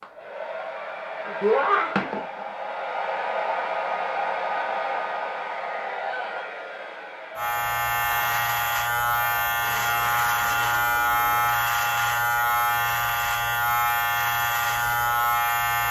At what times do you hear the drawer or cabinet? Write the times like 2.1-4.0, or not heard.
not heard.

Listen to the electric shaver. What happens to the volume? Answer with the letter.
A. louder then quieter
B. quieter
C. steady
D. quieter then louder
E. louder
C.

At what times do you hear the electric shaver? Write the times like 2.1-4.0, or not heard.
7.3-15.8.